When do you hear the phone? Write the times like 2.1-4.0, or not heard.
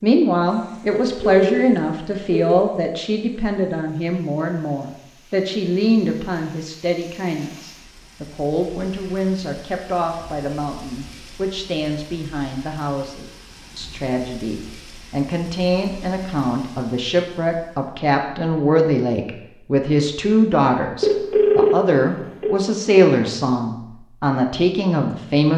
0.9-2.6, 21.0-22.6.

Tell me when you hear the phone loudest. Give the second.
22 s.